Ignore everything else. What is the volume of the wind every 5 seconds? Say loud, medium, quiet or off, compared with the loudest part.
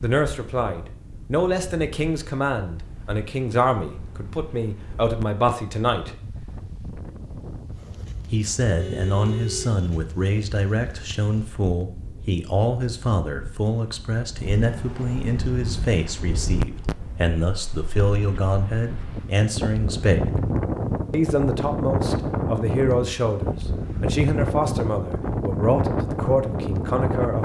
quiet, quiet, quiet, medium, loud, loud.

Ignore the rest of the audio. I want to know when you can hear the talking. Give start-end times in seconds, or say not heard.
0.0-6.2, 8.3-20.3, 21.1-27.4.